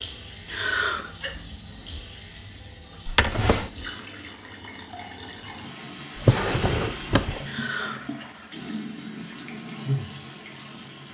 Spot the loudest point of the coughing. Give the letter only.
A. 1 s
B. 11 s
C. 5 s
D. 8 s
A.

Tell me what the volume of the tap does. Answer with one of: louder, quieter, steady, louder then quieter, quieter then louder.
louder.